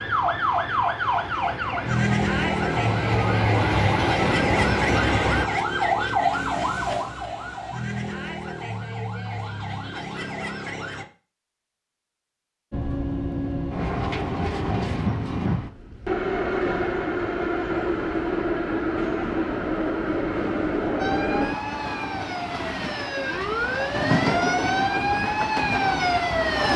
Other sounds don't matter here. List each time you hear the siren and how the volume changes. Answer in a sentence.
The siren can be heard from 0.0 to 11.1 s, getting quieter; and from 21.0 to 26.7 s, getting louder.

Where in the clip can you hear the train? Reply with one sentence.
You can hear the train from 0.0 to 5.5 s and from 12.7 to 26.7 s.